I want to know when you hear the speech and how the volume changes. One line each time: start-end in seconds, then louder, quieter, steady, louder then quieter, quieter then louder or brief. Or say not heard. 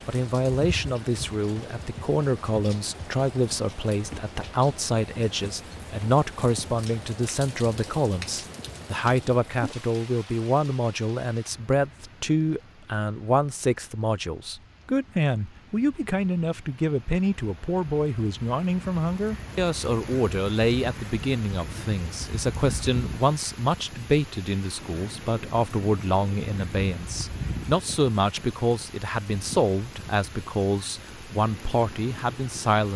0.1-32.9 steady.